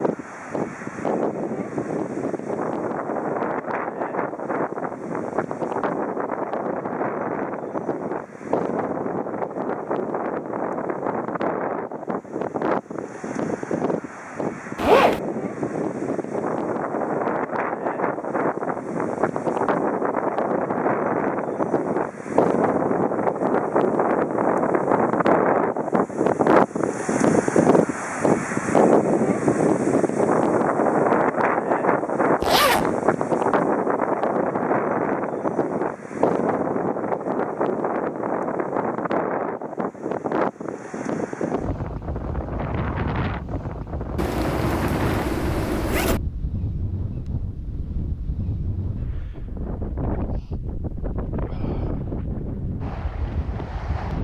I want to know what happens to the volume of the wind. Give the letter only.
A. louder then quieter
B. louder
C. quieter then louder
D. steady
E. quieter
A.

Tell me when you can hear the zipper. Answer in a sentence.
You can hear the zipper from 14.8 to 15.2 s, from 32.4 to 32.9 s and from 44.1 to 46.2 s.